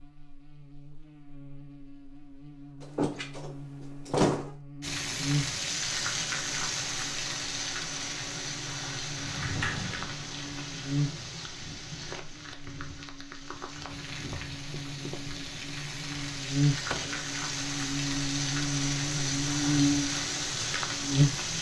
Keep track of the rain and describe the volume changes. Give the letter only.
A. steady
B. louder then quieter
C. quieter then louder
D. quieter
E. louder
C.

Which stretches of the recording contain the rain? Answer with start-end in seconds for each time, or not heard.
4.8-21.5.